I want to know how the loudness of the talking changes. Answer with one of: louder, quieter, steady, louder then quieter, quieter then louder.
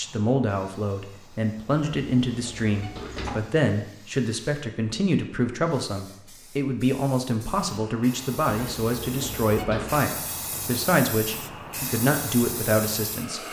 steady.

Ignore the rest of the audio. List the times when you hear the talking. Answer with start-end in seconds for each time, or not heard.
0.0-13.4.